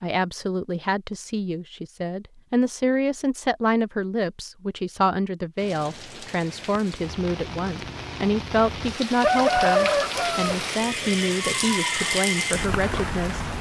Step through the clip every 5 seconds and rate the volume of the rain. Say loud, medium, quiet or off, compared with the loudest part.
off, medium, loud.